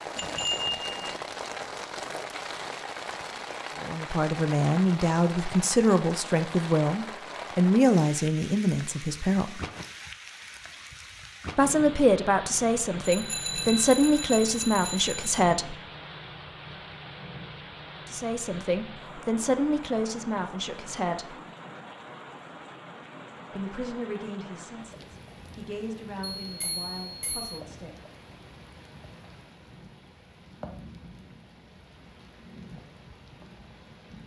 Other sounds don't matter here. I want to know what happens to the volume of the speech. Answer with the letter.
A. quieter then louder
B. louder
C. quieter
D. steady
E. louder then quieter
C.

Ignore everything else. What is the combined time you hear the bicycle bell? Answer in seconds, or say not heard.
5 s.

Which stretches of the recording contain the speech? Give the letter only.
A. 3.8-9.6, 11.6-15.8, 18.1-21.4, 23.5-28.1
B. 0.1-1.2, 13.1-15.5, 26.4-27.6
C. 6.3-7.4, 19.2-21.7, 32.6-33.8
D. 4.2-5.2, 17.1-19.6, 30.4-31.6
A.